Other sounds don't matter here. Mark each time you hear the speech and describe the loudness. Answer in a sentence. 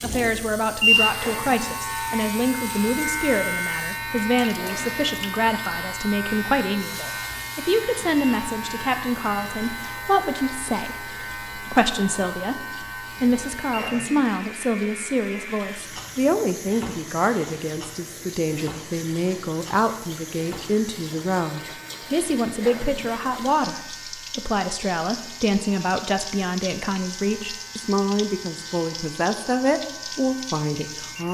You can hear the speech from 0.0 to 31.2 s, at a steady volume.